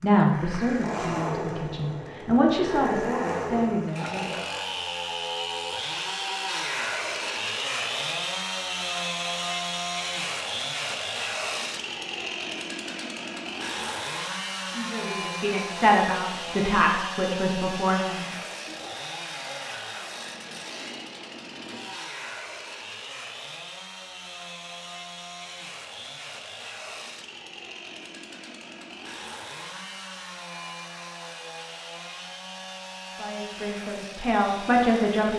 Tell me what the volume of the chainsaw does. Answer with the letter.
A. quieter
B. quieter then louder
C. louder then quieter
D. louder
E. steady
A.